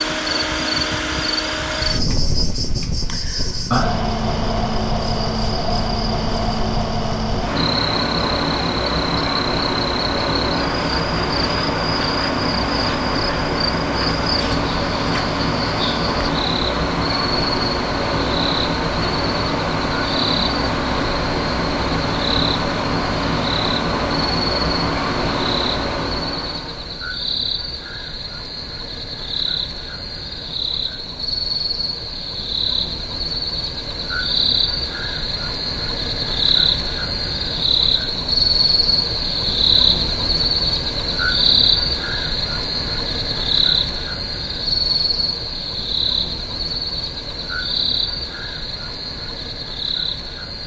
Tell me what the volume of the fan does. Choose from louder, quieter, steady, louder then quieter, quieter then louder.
steady.